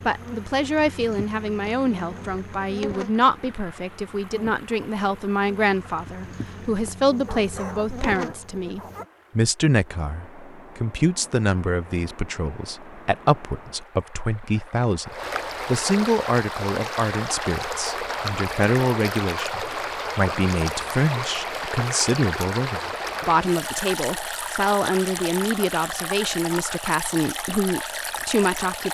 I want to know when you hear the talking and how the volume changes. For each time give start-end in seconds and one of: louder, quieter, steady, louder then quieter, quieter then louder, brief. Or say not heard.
0.1-28.8 steady.